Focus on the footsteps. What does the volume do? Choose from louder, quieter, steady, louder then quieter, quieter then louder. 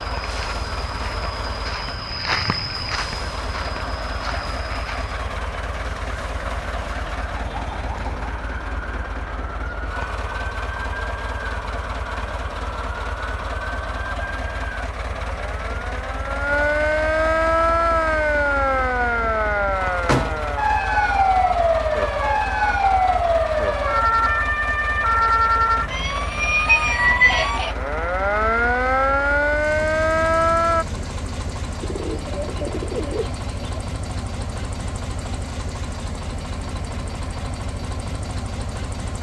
louder then quieter.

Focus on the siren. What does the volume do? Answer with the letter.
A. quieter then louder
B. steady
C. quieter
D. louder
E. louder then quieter
D.